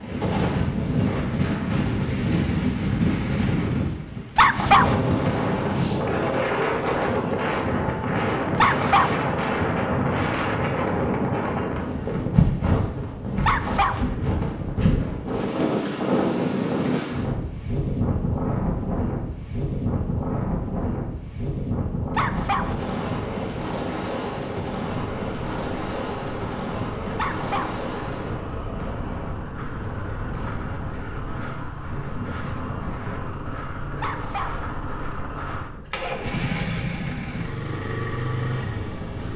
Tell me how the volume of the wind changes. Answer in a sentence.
The loudness of the wind goes down.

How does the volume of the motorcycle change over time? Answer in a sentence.
The loudness of the motorcycle goes up.